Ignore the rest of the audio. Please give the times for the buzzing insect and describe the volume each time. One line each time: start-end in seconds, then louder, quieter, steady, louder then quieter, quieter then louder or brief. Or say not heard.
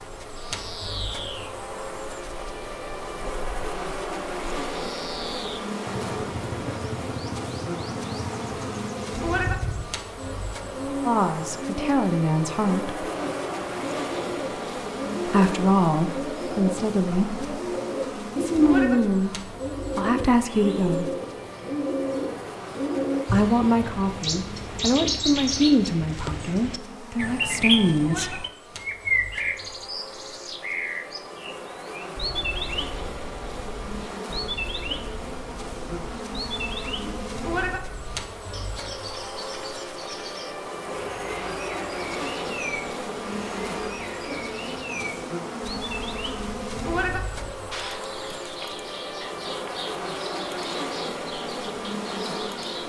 0.0-52.8 quieter then louder.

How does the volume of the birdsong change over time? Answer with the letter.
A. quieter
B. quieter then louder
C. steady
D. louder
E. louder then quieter
E.